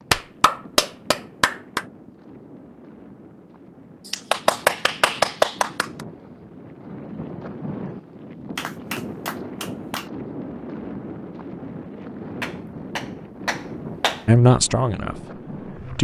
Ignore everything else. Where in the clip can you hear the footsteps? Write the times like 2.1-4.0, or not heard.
not heard.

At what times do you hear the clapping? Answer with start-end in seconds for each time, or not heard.
0.1-1.9, 4.0-6.0, 8.6-10.1, 12.4-14.2.